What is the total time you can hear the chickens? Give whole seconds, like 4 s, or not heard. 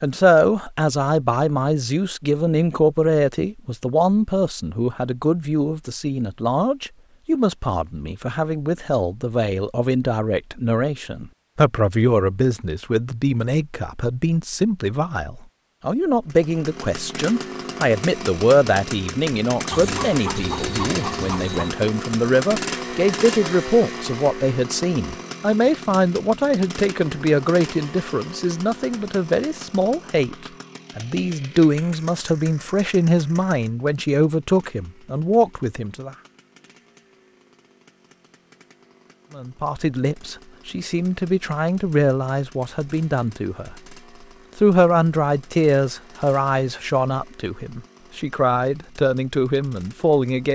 2 s.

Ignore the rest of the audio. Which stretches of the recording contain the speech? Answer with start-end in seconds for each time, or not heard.
0.0-36.1, 39.4-44.0, 44.5-50.4.